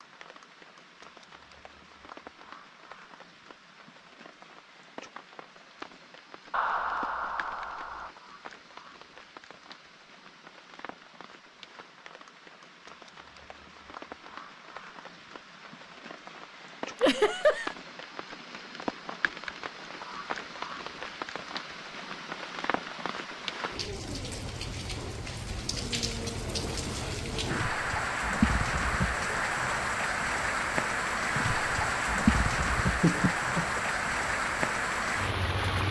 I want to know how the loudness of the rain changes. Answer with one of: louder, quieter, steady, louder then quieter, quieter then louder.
louder.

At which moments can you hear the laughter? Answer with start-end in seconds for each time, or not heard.
6.5-8.1, 17.0-17.8, 32.8-33.8.